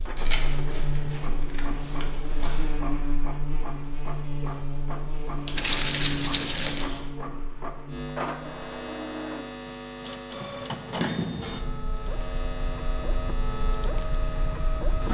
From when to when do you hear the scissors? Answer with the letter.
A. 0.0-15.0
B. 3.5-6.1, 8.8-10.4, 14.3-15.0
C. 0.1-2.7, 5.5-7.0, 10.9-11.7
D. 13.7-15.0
C.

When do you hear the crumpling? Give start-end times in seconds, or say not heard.
5.5-6.9.